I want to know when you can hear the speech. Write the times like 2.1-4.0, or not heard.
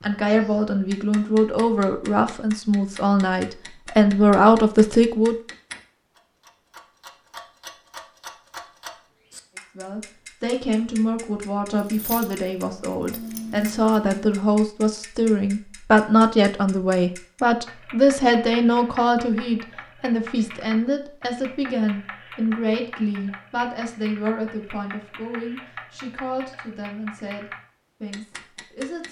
0.0-5.3, 9.8-29.0.